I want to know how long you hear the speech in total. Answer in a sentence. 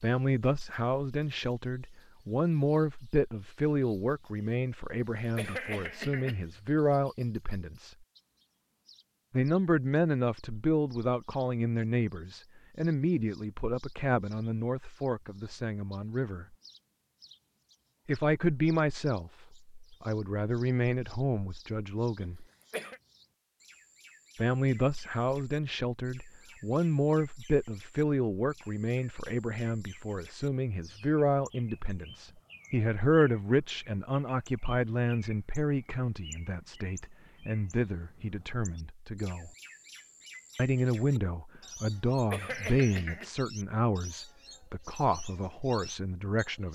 The speech can be heard for 41 seconds in total.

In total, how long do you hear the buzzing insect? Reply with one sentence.
You can't hear the buzzing insect here.